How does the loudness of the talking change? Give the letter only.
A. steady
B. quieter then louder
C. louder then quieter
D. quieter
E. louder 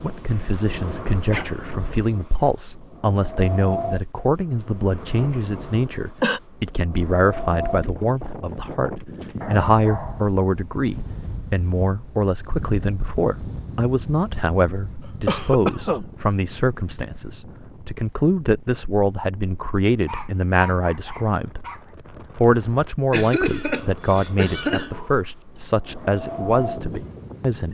A.